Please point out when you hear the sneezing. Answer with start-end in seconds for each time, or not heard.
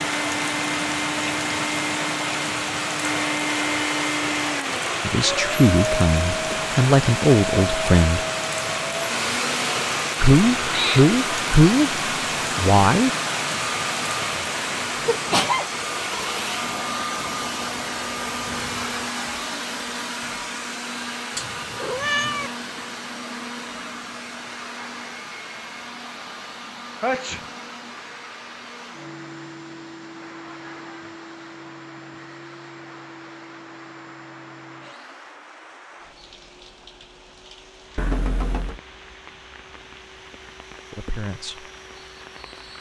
15.1-15.7, 27.0-27.4.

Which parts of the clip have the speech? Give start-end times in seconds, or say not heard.
5.0-8.2, 10.2-13.1, 40.9-41.6.